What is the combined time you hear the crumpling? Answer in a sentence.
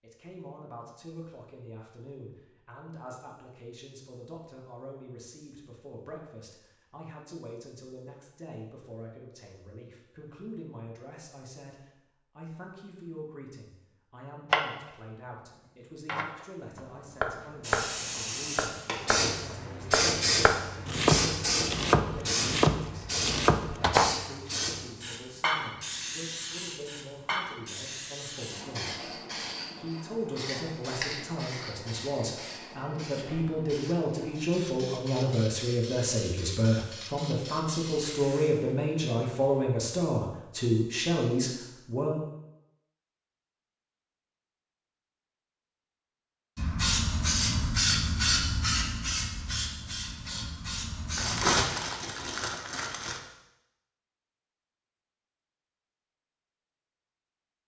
The crumpling can be heard for 2 seconds in total.